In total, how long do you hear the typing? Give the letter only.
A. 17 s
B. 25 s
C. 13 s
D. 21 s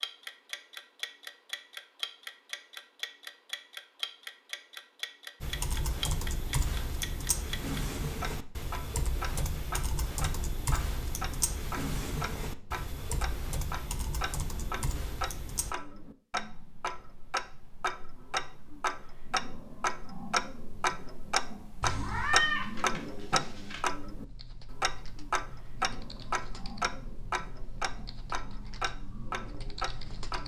A.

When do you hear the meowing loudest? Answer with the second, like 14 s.
22 s.